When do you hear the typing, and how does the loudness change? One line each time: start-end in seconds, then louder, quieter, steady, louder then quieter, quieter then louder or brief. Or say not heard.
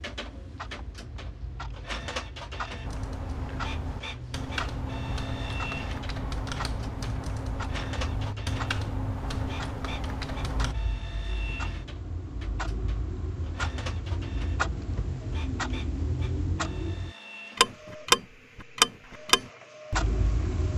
2.8-10.8 steady.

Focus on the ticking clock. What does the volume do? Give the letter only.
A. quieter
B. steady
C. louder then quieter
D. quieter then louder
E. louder
E.